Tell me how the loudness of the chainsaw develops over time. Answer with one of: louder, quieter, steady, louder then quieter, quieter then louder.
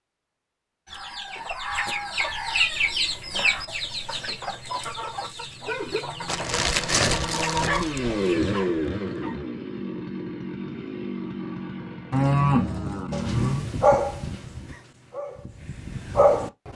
louder then quieter.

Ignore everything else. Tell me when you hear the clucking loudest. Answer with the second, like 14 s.
3 s.